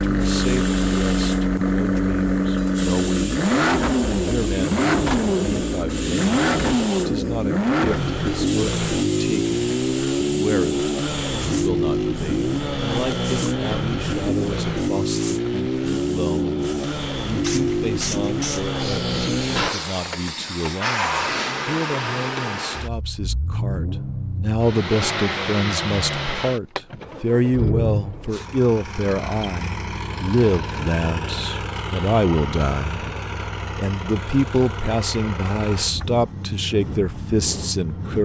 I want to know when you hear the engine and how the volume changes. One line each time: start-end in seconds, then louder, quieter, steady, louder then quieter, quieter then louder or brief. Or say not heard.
0.0-38.1 quieter.